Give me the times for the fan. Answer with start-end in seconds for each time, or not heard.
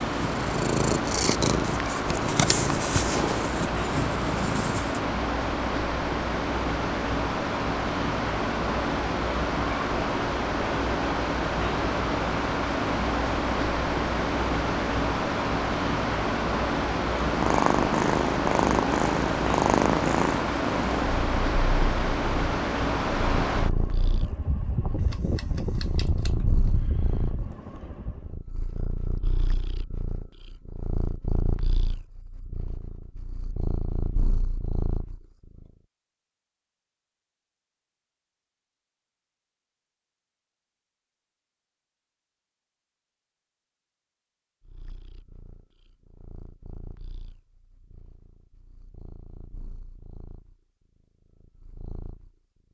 0.0-28.4.